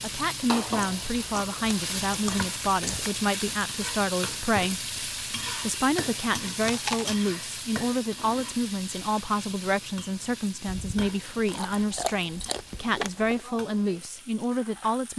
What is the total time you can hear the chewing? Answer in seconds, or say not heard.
6 s.